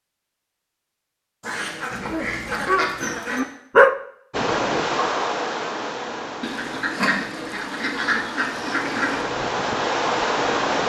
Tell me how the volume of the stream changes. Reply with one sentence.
The loudness of the stream goes down, then up.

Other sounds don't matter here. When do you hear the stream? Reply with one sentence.
The stream can be heard from 4.3 to 10.8 s.